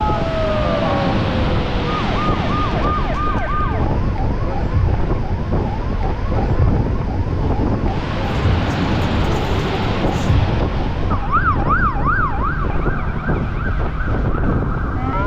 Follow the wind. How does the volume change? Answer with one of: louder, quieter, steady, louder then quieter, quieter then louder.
steady.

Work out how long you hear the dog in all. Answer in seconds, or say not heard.
not heard.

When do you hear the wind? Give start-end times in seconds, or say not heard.
0.0-15.2.